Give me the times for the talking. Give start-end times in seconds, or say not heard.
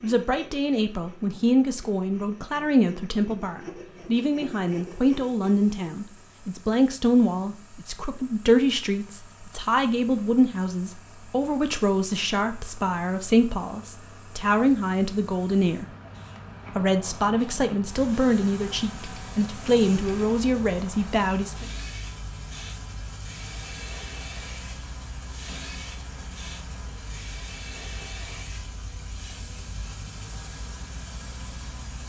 0.0-15.8, 16.8-21.6.